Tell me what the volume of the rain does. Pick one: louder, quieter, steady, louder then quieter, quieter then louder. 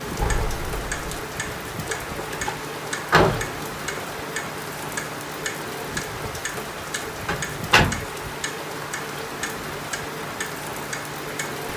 steady.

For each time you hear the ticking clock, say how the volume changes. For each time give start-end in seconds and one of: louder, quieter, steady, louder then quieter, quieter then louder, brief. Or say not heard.
0.1-11.7 steady.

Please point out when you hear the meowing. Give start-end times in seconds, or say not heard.
0.1-1.1.